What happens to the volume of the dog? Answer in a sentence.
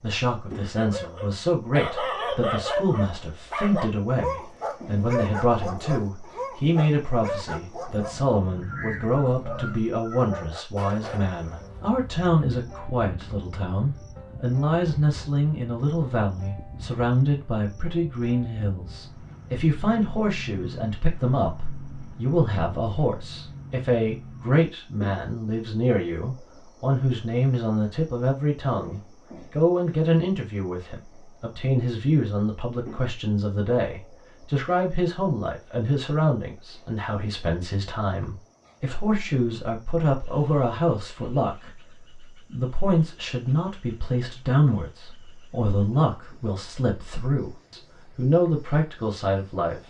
The volume of the dog goes down.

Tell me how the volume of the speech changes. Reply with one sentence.
The loudness of the speech stays about the same.